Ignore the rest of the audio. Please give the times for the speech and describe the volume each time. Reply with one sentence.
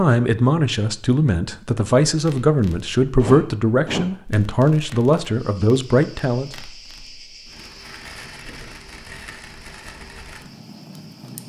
You can hear the speech from 0.0 to 6.5 s, at a steady volume.